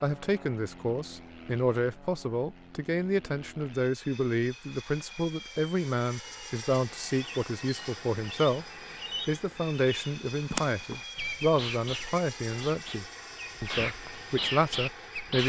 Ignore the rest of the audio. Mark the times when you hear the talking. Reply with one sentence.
The talking can be heard from 0.0 to 8.7 s and from 9.2 to 15.4 s.